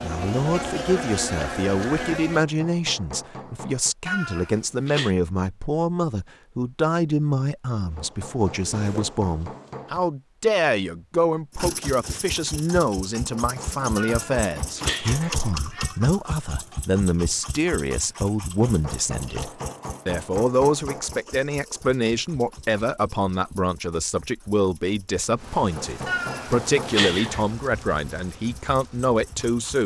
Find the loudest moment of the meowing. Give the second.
27 s.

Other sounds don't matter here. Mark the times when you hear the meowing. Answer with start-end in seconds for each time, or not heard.
4.0-5.2, 13.9-16.0, 26.1-27.4.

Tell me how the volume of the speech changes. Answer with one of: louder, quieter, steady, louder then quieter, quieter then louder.
steady.